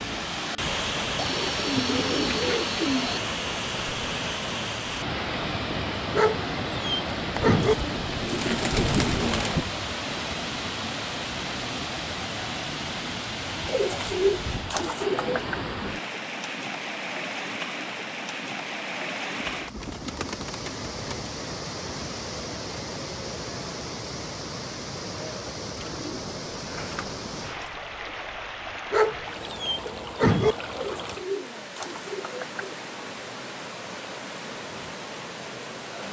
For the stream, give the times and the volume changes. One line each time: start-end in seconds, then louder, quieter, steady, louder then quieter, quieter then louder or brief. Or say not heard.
0.0-36.0 quieter.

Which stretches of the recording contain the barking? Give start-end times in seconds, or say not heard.
6.2-7.8, 28.9-30.6.